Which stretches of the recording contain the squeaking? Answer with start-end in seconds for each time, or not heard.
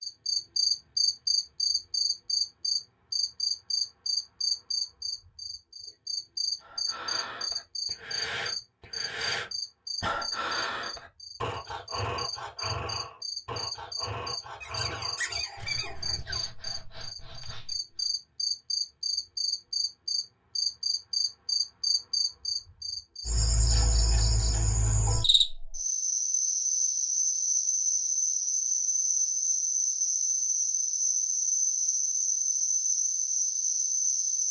14.6-16.4.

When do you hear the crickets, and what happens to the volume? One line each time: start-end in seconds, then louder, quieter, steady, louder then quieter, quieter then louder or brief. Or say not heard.
0.0-34.4 quieter then louder.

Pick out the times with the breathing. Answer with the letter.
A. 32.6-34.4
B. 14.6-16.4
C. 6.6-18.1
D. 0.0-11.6
C.